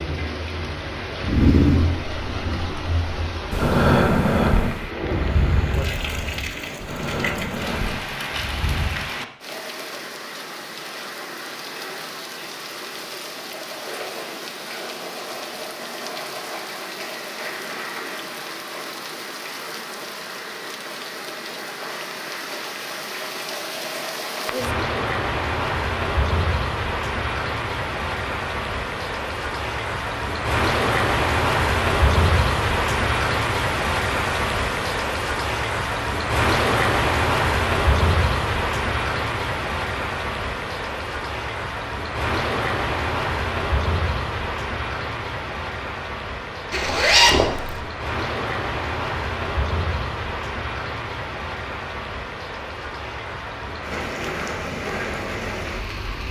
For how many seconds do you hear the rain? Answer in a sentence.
The rain can be heard for 56 seconds in total.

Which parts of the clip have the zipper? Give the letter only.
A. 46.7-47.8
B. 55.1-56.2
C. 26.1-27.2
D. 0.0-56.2
A.